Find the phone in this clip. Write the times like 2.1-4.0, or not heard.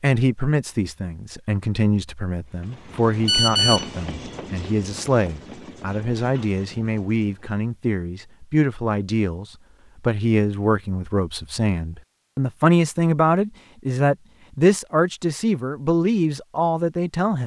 3.2-3.9.